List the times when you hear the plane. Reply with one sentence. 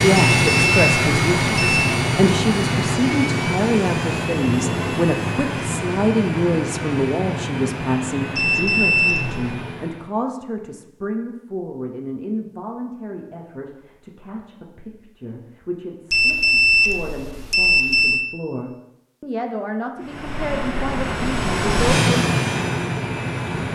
The plane can be heard from 0.0 to 10.2 s and from 19.9 to 23.7 s.